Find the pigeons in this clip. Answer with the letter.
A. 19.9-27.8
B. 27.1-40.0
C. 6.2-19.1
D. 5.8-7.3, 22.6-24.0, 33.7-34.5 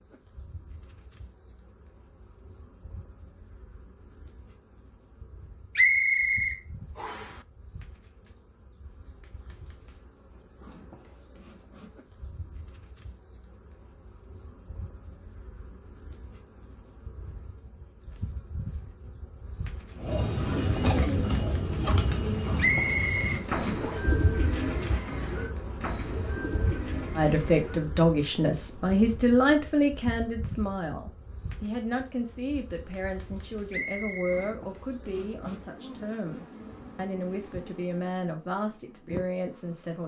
A.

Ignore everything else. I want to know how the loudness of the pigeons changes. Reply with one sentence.
The volume of the pigeons goes down.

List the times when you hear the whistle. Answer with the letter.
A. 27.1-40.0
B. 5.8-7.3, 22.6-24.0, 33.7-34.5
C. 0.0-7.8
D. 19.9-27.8
B.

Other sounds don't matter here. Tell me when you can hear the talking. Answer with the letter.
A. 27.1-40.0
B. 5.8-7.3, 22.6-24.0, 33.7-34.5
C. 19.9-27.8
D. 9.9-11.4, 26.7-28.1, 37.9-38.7
A.